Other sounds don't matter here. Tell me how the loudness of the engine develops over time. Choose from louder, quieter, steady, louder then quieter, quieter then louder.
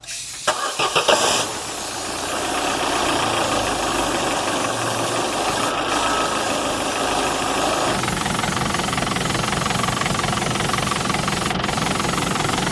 steady.